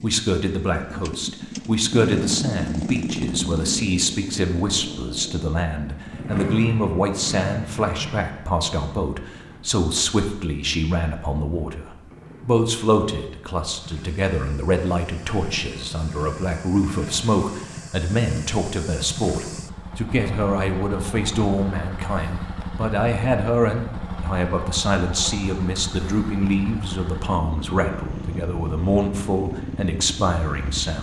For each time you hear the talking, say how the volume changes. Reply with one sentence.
You can hear the talking from 0.0 to 30.9 s, at a steady volume.